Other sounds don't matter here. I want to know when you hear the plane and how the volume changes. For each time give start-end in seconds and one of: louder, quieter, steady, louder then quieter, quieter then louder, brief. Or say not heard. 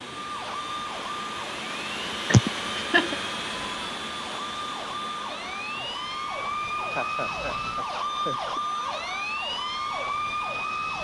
0.0-10.9 quieter.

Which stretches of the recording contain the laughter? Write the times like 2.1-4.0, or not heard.
2.3-3.1, 6.4-8.6.